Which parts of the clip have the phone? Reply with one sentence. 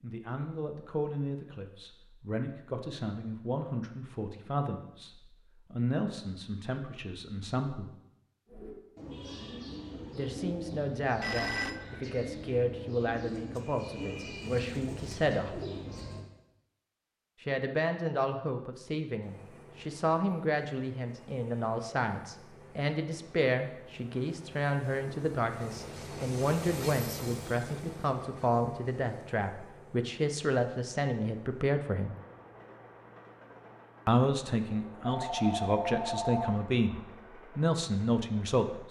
The phone can be heard from 11.2 to 11.8 s and from 35.0 to 36.5 s.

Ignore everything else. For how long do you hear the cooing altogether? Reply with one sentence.
You can hear the cooing for 8 seconds altogether.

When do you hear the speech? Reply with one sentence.
The speech can be heard from 0.0 to 7.9 s, from 10.2 to 15.7 s, from 17.4 to 32.1 s and from 34.0 to 38.8 s.